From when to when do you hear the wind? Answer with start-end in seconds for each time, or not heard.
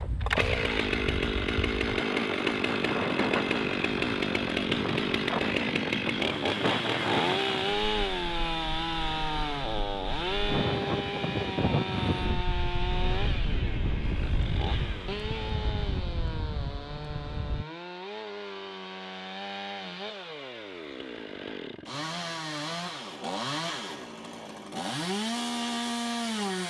0.0-17.6.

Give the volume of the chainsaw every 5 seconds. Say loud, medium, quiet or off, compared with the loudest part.
loud, loud, medium, medium, medium, loud.